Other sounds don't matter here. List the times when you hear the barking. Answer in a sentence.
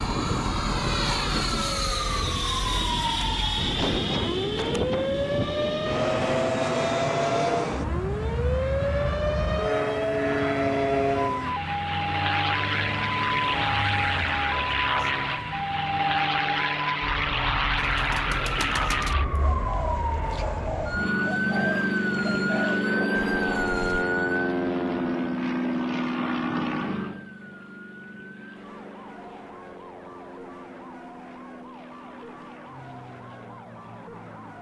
You can't hear the barking here.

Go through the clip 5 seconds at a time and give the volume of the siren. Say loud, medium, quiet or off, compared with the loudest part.
loud, loud, loud, loud, loud, quiet, quiet.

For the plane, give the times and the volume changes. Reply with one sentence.
The plane can be heard from 0.0 to 34.5 s, getting quieter.